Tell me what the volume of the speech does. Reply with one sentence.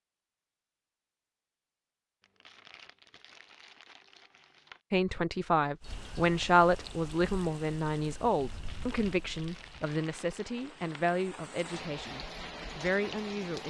The volume of the speech goes down.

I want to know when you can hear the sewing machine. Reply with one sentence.
The sewing machine can't be heard in this clip.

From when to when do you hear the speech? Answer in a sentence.
You can hear the speech from 4.9 to 13.6 s.